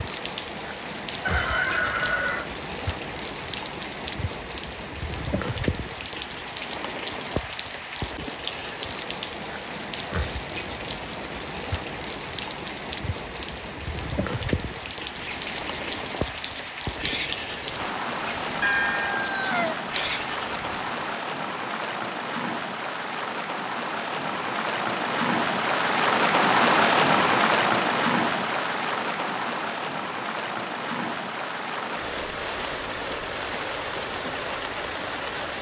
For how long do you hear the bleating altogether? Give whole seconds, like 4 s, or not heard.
6 s.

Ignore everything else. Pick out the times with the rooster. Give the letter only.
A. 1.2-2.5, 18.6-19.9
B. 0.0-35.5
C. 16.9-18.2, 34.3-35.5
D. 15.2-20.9
A.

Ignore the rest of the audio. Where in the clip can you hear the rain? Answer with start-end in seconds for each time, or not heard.
0.0-35.5.